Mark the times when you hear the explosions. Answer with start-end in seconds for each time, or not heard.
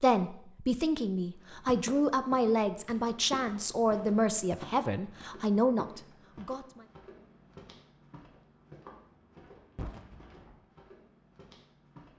9.8-10.7.